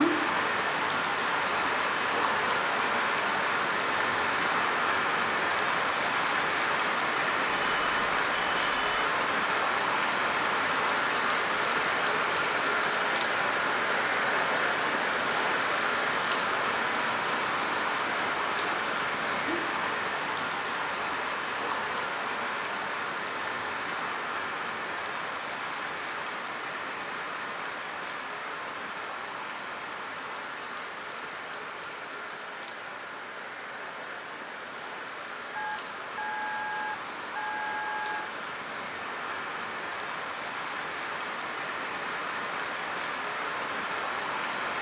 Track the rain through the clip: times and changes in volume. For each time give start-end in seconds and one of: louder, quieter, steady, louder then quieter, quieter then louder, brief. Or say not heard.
0.0-44.7 quieter.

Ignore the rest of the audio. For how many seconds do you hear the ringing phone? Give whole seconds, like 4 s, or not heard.
4 s.